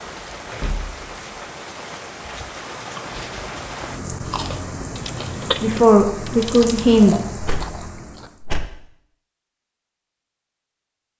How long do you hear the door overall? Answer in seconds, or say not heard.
2 s.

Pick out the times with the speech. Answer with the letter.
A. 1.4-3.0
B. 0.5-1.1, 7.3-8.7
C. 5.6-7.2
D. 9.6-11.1
C.